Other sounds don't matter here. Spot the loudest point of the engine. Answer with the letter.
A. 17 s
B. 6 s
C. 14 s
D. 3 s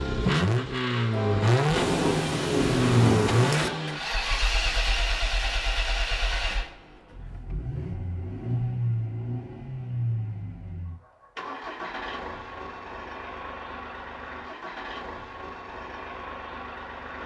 D.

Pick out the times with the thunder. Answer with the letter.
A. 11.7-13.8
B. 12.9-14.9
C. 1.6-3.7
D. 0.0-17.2
C.